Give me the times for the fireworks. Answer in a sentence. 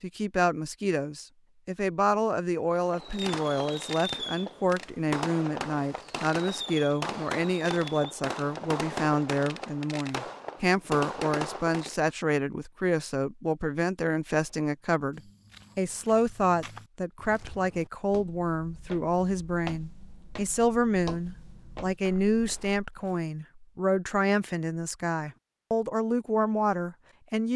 The fireworks can be heard from 2.7 to 12.1 s.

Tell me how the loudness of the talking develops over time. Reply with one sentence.
The loudness of the talking stays about the same.